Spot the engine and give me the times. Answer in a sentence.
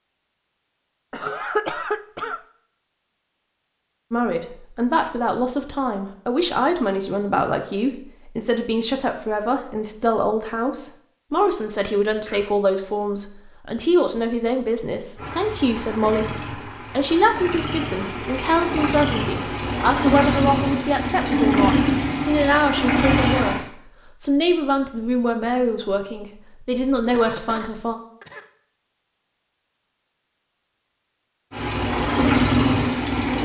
You can hear the engine from 15.2 to 23.6 s and from 31.5 to 33.4 s.